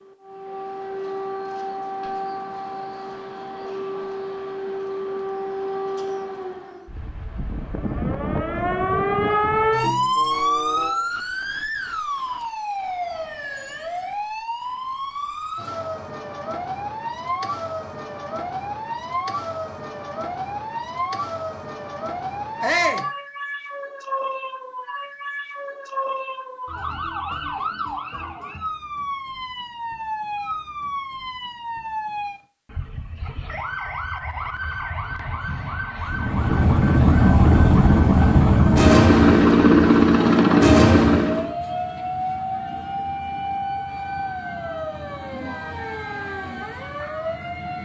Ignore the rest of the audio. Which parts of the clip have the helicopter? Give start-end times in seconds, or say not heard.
36.0-41.5.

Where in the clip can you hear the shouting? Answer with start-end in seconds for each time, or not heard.
22.6-23.1.